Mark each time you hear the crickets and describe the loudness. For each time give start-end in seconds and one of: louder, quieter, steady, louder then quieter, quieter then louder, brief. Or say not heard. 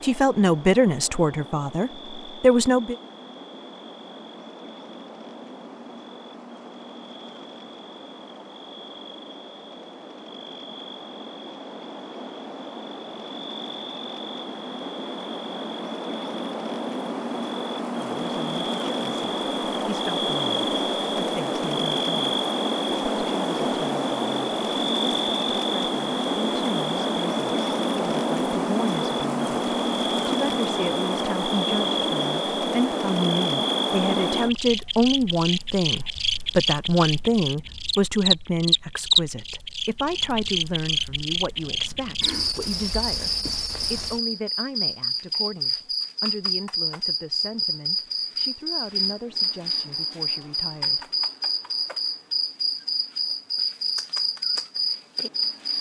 0.0-55.7 louder.